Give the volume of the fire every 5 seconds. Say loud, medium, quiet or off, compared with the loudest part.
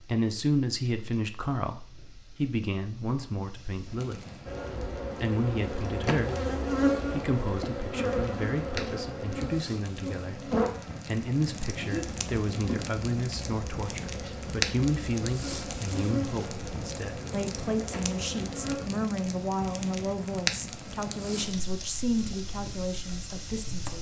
quiet, medium, loud, loud, loud.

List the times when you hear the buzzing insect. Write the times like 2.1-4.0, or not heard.
4.5-18.9.